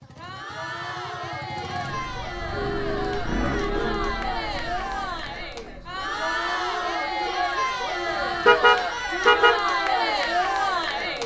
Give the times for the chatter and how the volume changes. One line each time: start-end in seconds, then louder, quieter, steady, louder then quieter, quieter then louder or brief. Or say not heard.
0.0-11.2 louder.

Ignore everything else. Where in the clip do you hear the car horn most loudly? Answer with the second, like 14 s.
9 s.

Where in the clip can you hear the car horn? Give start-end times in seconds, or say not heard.
2.0-4.2, 8.4-9.6.